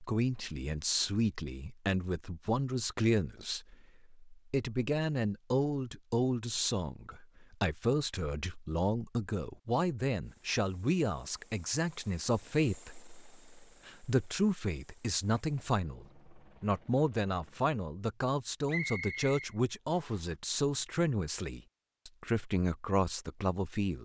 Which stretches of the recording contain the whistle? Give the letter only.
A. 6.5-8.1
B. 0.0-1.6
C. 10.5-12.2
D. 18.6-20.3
D.